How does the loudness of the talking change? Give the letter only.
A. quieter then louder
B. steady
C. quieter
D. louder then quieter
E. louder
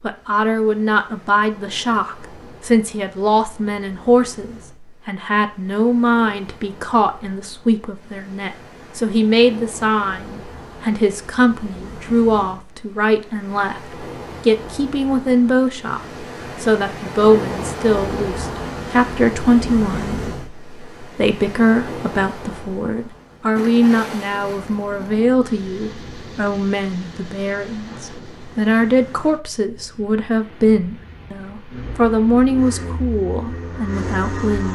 B.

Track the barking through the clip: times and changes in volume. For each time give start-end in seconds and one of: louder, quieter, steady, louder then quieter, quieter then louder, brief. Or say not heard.
not heard.